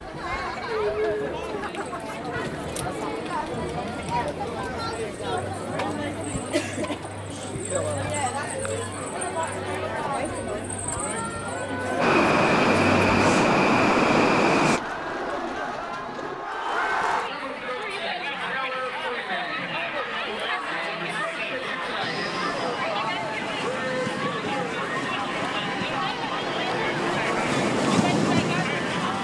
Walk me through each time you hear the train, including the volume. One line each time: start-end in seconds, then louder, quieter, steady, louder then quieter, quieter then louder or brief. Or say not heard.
12.0-14.8 brief
22.0-29.1 louder.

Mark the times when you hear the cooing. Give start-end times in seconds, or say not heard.
14.6-16.5.